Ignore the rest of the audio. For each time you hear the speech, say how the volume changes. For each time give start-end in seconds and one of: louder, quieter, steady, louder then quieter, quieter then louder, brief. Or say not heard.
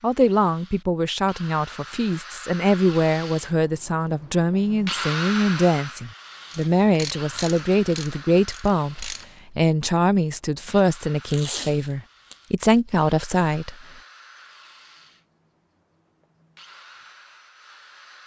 0.0-13.8 steady.